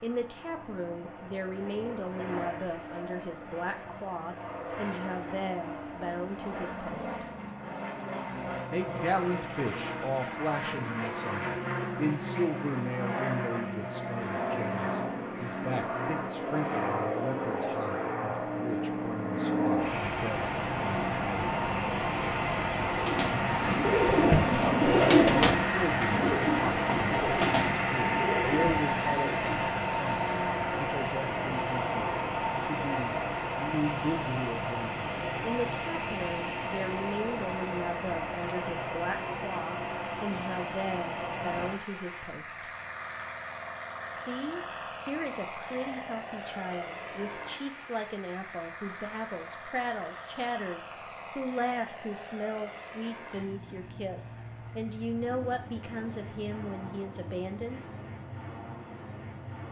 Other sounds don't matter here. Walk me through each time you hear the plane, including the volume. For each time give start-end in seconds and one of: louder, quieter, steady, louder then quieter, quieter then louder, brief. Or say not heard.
0.0-59.6 louder then quieter.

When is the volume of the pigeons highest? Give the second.
25 s.